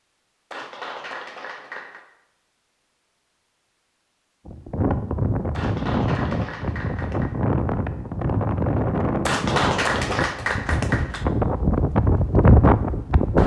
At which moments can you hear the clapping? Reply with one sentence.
The clapping can be heard from 0.5 to 2.0 s, from 5.5 to 7.3 s and from 9.2 to 11.2 s.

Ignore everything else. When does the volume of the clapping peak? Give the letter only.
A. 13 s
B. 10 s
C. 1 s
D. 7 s
B.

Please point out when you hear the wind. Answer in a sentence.
You can hear the wind from 4.5 to 13.4 s.